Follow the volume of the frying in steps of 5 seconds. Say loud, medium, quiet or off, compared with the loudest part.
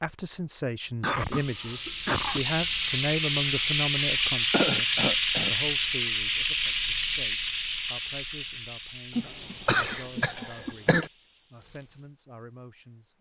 loud, loud, quiet.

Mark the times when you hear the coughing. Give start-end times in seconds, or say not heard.
1.0-2.5, 4.5-5.5, 9.2-11.1.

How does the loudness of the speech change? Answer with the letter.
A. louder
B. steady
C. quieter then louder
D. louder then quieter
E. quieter
E.